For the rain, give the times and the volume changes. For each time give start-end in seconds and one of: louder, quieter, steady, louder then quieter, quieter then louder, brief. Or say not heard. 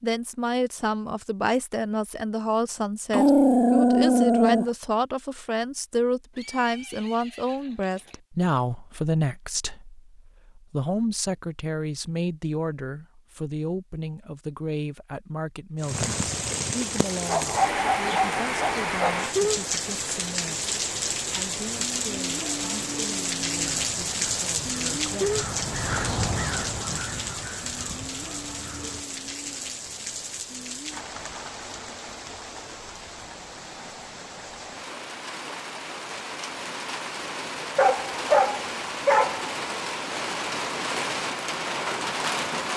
15.8-42.7 quieter then louder.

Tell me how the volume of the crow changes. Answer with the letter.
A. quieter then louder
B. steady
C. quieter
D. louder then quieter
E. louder
D.